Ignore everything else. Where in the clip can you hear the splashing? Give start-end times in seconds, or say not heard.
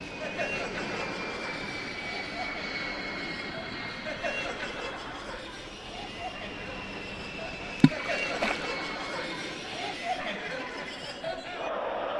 7.8-8.7.